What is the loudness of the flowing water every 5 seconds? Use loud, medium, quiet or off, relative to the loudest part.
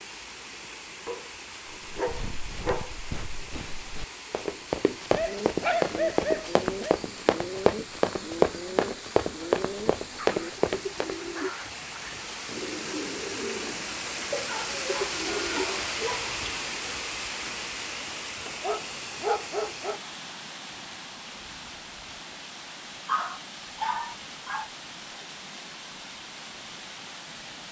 medium, medium, loud, loud, medium, medium.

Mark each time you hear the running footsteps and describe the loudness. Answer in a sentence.
The running footsteps can be heard from 1.9 to 11.2 s, getting louder.